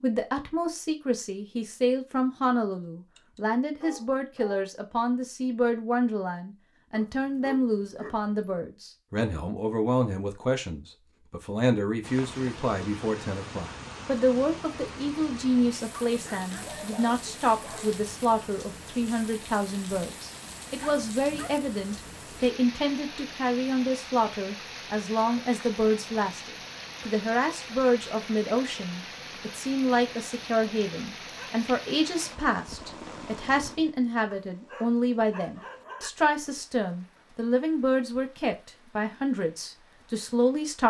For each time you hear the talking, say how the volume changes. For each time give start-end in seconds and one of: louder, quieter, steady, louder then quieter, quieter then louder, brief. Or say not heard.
0.0-40.8 steady.